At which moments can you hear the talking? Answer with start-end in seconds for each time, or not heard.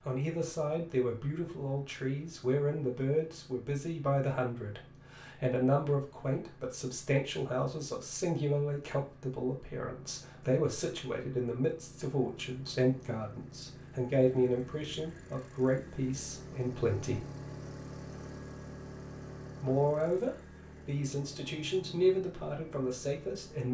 0.1-17.2, 19.6-23.6.